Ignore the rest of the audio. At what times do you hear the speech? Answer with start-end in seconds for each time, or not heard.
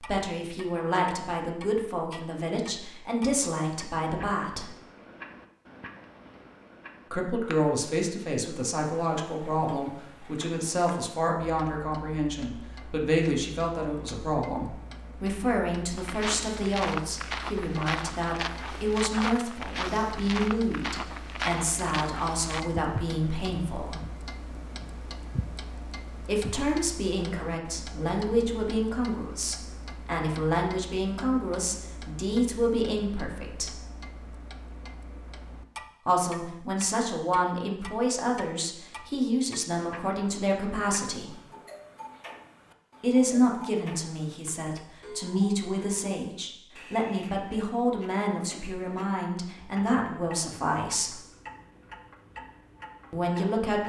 0.0-4.8, 7.1-24.0, 26.2-33.8, 36.0-41.4, 43.0-51.2, 53.1-53.8.